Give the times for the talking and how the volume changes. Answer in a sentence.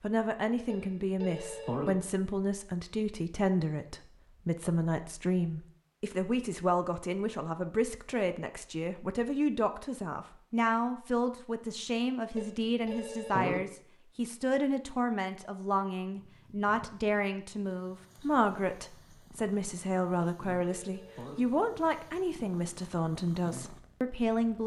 You can hear the talking from 0.0 to 24.6 s, at a steady volume.